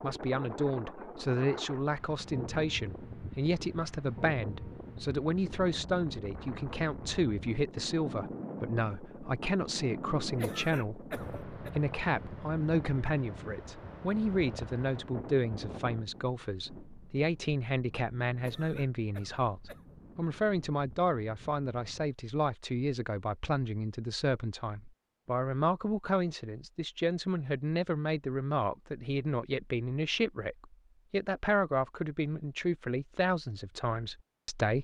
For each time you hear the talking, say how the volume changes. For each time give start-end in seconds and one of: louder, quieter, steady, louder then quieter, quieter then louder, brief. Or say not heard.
0.0-34.8 steady.